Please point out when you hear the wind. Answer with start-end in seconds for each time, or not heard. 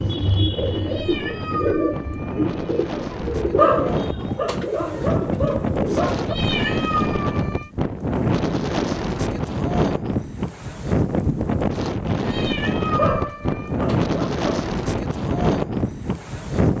0.0-16.7.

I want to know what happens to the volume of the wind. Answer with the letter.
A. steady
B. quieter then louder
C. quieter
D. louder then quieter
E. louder
E.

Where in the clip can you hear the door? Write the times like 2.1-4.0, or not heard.
not heard.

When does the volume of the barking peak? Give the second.
4 s.